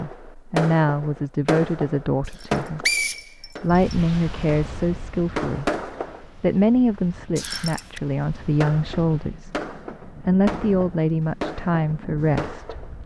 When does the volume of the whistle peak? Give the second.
3 s.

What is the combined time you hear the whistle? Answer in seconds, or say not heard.
2 s.